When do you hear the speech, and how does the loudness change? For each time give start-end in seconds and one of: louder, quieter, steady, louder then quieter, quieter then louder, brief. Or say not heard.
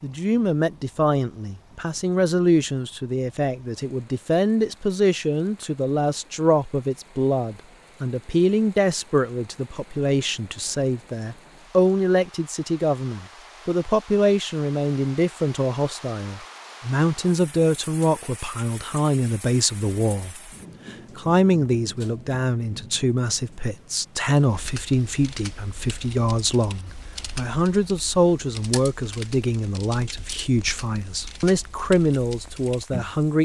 0.0-33.3 steady.